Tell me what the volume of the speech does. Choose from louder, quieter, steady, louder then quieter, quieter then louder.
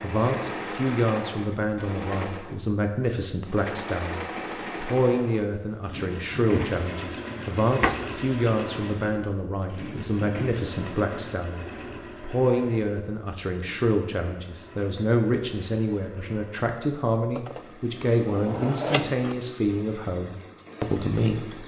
steady.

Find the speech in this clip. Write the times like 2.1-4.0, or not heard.
0.0-21.6.